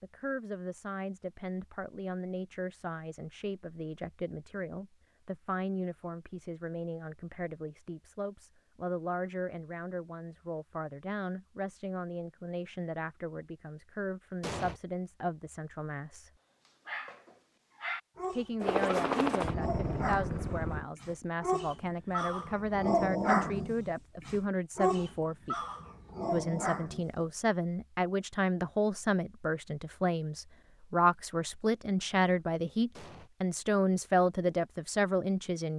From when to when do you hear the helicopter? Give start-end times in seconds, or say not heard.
18.6-20.9.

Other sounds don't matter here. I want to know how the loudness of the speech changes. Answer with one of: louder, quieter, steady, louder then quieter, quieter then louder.
louder.